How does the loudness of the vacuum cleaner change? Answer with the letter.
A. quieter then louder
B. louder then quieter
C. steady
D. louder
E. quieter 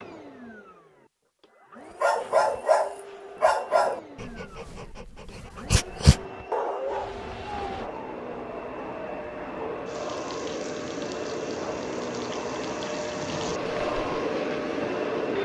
D.